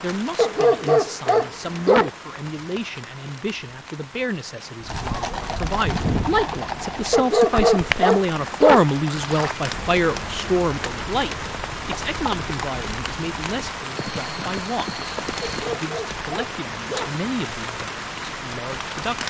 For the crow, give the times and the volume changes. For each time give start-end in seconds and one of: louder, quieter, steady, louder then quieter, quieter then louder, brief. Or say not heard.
not heard.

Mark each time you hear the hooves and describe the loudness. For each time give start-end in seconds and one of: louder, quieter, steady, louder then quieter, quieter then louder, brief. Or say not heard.
4.8-15.8 quieter.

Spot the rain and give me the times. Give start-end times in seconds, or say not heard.
0.0-19.2.